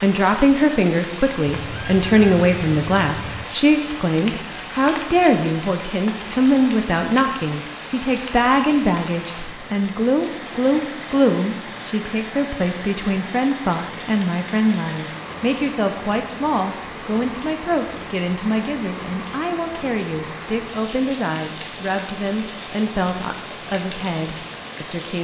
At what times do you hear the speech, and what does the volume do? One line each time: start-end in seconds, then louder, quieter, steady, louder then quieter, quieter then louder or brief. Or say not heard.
0.0-25.1 quieter.